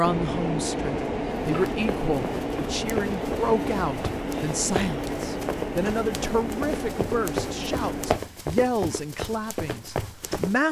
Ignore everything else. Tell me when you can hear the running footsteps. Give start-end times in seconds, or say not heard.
1.4-10.6.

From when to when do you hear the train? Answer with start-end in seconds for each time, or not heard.
0.0-8.2.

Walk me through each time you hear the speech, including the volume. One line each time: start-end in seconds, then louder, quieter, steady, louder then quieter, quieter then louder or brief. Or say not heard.
0.0-10.6 steady.